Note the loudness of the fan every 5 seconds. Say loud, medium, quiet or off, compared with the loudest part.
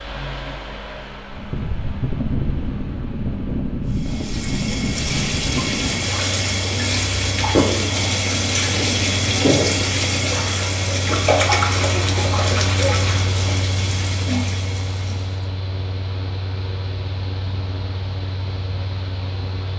loud, loud, loud, medium.